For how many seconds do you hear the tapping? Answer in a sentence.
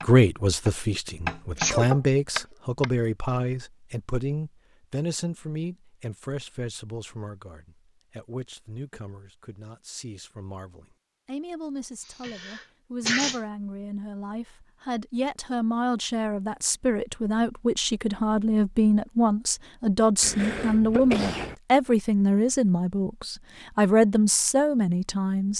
You can hear the tapping for 3 seconds altogether.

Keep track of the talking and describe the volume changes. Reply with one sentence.
The loudness of the talking goes down, then up.